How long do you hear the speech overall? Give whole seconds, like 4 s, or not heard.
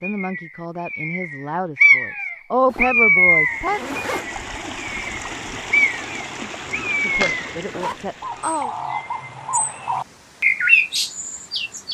6 s.